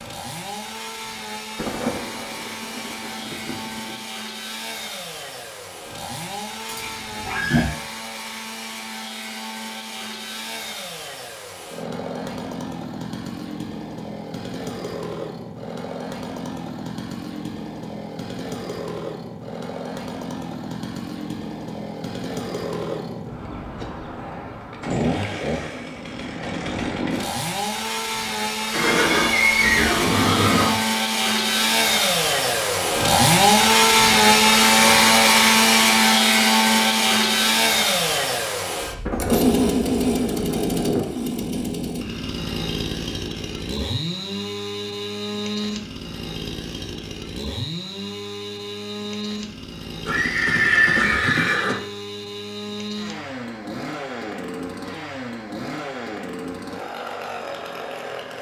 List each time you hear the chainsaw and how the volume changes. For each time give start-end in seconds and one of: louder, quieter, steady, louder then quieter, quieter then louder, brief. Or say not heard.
0.0-58.3 louder then quieter.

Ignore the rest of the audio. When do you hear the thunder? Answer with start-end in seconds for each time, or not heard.
1.6-4.0, 39.0-41.5.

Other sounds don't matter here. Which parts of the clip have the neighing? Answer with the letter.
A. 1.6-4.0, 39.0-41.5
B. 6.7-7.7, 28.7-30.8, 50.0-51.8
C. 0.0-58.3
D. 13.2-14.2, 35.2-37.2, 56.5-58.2
B.